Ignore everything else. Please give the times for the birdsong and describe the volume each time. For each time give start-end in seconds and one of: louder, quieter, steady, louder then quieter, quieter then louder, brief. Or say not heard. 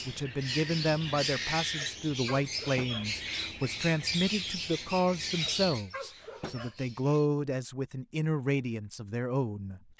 0.0-7.3 quieter.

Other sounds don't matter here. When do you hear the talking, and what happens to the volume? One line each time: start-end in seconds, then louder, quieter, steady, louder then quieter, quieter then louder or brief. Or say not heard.
0.1-9.8 steady.